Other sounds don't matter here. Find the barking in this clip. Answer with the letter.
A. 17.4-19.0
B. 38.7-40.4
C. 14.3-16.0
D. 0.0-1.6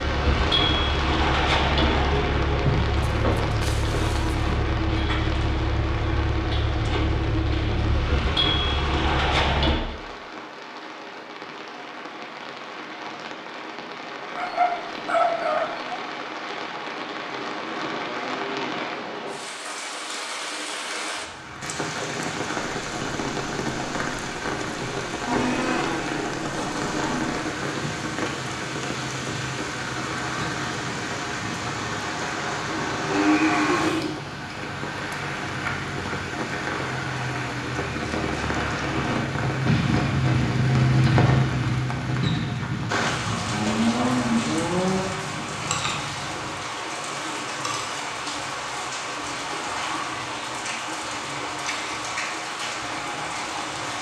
C.